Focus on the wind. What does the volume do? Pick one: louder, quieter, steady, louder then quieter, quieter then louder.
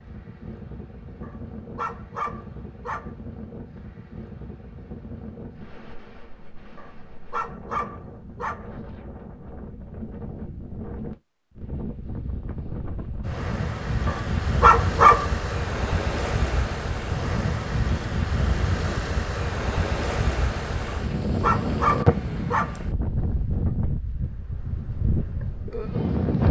louder.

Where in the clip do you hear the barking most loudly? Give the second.
15 s.